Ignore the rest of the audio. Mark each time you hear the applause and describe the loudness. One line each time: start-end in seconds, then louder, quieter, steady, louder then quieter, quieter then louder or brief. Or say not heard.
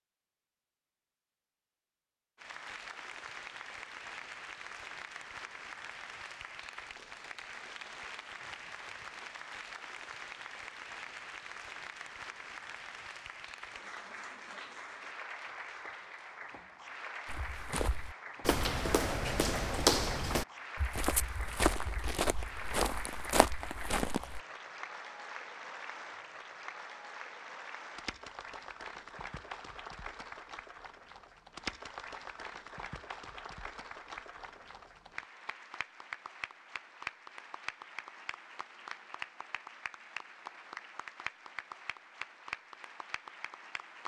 2.4-44.0 steady.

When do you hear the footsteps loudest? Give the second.
20 s.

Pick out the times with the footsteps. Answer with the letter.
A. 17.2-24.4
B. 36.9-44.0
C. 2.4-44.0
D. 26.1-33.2
A.